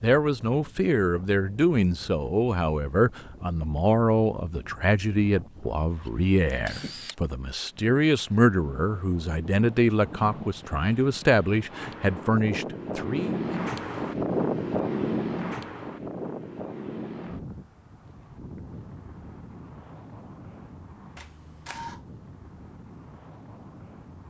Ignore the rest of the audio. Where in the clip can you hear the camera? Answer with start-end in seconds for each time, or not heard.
6.0-7.7, 21.1-22.1.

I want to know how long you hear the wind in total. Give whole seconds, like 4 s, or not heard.
24 s.